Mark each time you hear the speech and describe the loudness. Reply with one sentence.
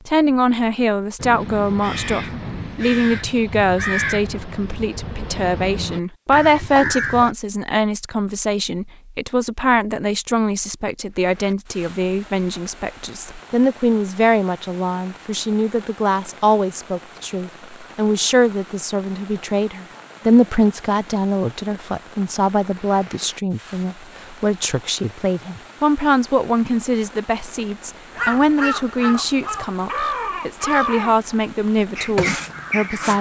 You can hear the speech from 0.1 to 33.1 s, at a steady volume.